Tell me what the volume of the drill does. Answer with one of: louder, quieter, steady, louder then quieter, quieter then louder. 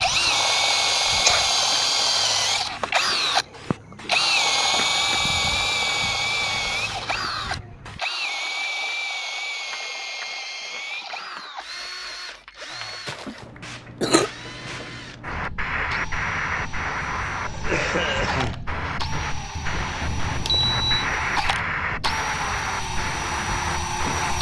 quieter then louder.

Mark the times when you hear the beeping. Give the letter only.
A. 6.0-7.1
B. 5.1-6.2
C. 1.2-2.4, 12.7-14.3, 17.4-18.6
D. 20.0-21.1
D.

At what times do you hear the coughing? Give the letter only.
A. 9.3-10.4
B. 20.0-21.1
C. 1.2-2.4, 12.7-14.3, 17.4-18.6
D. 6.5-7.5
C.